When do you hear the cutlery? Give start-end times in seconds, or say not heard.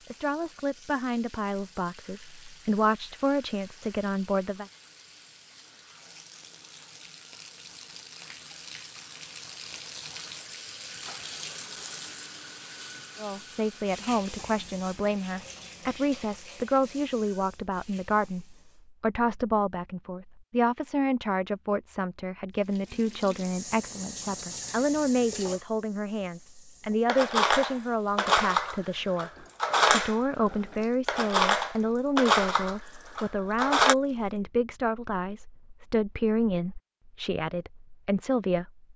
27.1-34.0.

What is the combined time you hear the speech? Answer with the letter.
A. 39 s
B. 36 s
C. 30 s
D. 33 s
C.